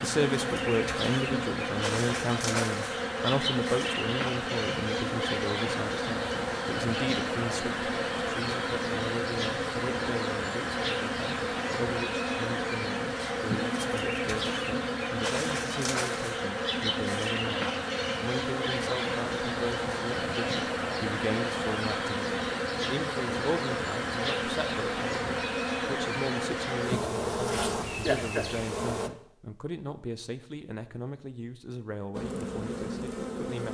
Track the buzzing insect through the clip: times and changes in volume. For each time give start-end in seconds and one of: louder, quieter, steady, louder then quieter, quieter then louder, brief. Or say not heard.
0.0-29.1 steady
32.1-33.6 brief.